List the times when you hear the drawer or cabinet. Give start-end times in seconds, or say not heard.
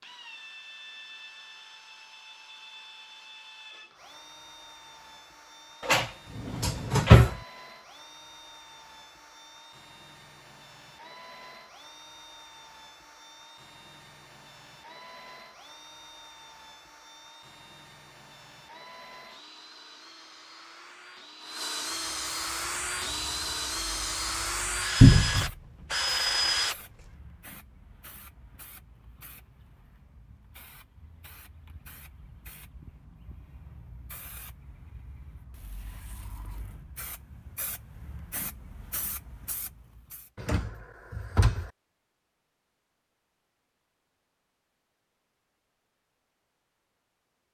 5.8-7.3, 25.0-25.5, 40.4-41.7.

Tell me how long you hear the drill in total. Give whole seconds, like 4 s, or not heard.
27 s.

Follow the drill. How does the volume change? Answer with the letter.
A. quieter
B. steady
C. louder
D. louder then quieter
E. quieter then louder
C.